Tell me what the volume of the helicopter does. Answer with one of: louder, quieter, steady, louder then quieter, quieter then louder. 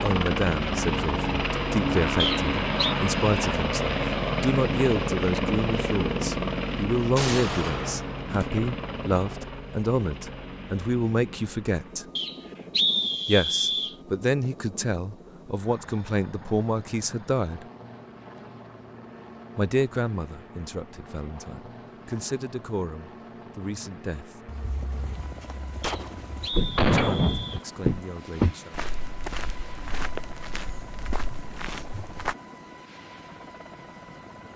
quieter.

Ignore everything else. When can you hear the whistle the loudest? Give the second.
13 s.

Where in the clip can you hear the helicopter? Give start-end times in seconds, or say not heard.
0.0-34.5.